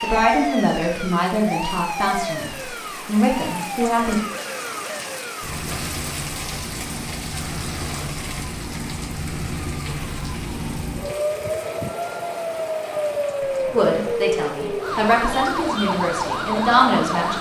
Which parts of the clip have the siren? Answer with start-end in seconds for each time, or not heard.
0.0-17.3.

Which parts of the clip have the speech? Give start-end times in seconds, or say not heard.
0.0-4.2, 13.7-17.3.